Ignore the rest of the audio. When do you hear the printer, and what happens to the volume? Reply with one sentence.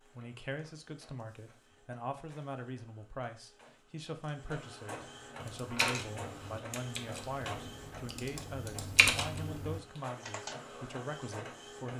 The printer can be heard from 0.0 to 11.9 s, getting louder then quieter.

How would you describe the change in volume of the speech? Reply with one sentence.
The volume of the speech stays about the same.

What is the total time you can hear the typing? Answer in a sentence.
You can hear the typing for 5 seconds altogether.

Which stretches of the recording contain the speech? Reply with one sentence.
The speech can be heard from 0.0 to 11.9 s.